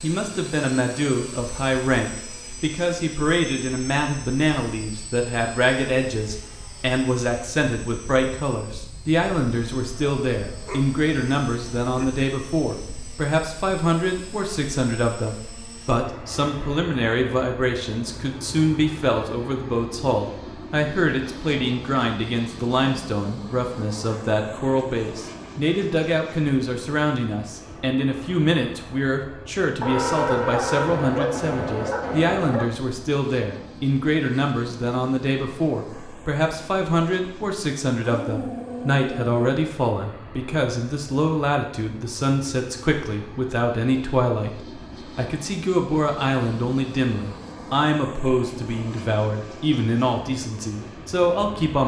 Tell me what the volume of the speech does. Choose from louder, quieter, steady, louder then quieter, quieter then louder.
steady.